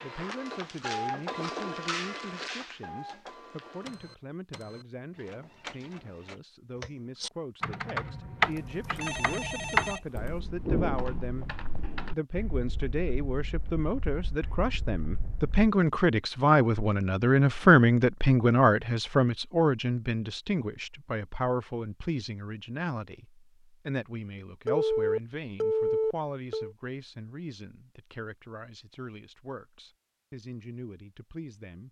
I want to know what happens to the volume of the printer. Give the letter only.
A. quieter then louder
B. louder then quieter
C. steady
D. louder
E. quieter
E.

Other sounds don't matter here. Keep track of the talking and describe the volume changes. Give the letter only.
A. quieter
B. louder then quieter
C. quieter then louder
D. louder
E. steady
B.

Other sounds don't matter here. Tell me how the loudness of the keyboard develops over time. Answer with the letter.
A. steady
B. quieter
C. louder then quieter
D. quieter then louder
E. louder
B.